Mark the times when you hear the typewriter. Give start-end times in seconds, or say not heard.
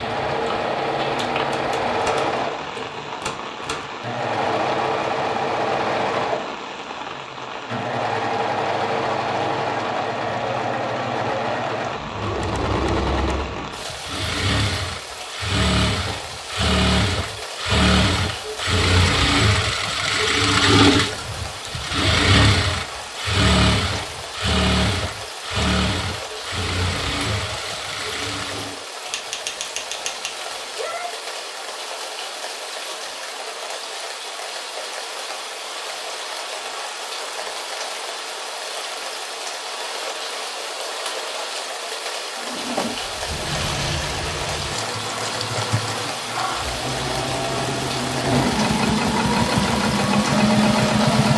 1.4-3.9, 29.1-31.1.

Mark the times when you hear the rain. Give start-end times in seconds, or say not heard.
0.0-51.3.